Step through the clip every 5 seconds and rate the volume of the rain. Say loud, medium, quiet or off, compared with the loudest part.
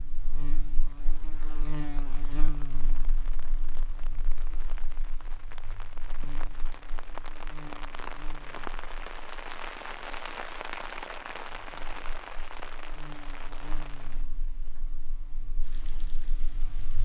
quiet, loud, loud, quiet.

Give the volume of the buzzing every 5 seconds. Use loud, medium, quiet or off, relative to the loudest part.
loud, medium, medium, medium.